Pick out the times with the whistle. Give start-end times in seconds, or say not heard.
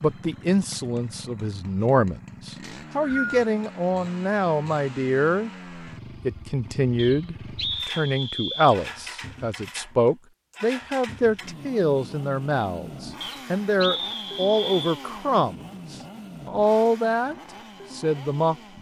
2.6-3.5, 7.0-8.8, 13.2-15.0.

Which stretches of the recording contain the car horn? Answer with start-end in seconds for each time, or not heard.
not heard.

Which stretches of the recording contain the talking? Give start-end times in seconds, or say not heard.
0.0-5.5, 6.2-18.7.